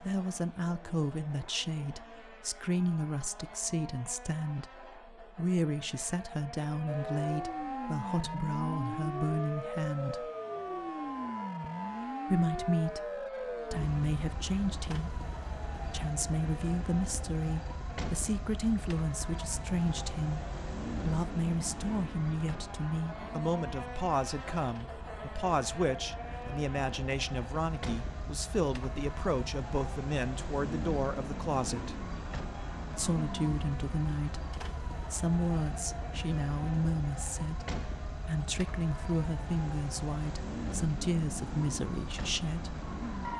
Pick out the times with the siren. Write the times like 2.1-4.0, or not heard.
6.8-43.3.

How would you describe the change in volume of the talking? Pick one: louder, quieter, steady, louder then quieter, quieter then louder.
steady.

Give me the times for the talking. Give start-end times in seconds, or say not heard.
0.0-10.3, 12.2-31.9, 33.0-42.8.